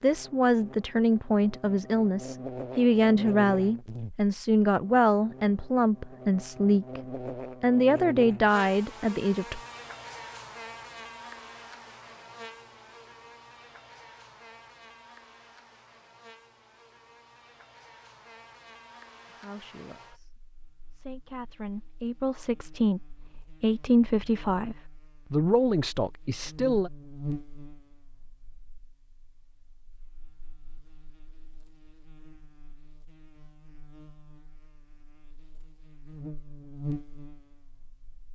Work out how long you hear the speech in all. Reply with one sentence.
You can hear the speech for 17 seconds altogether.